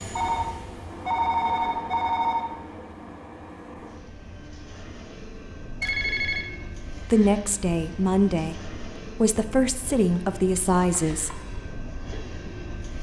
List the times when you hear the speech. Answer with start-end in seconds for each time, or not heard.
7.0-11.4.